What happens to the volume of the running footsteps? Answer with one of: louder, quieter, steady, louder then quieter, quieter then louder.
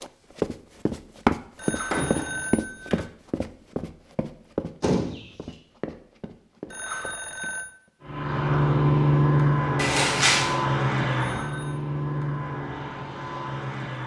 quieter.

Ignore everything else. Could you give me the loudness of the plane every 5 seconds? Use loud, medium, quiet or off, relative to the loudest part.
off, loud, medium.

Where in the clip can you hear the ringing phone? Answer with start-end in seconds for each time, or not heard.
1.6-3.1, 6.7-7.8, 11.2-11.8.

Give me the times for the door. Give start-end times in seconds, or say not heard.
1.9-2.5, 4.8-5.2, 9.8-10.5.